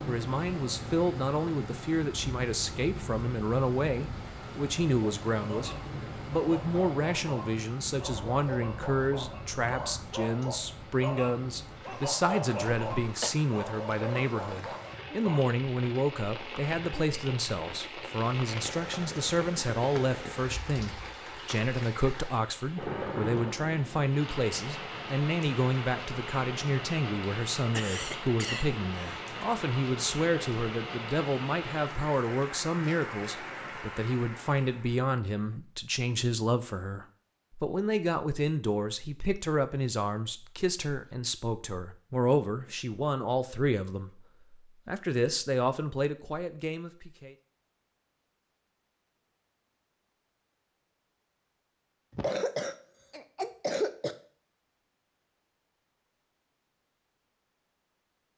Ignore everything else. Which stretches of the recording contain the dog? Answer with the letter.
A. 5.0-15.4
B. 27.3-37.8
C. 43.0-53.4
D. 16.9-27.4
A.